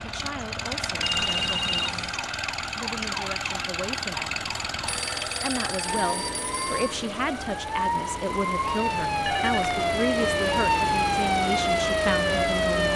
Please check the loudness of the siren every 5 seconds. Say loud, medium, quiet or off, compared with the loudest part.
quiet, medium, loud.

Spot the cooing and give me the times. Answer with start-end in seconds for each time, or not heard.
not heard.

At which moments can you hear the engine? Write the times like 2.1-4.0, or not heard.
0.0-12.9.